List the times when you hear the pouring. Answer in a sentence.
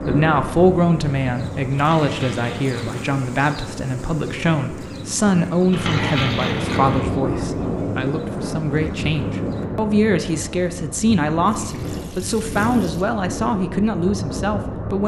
The pouring can be heard from 1.8 to 3.0 s, from 5.7 to 7.0 s and from 11.4 to 13.1 s.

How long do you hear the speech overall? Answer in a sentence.
The speech can be heard for 15 seconds in total.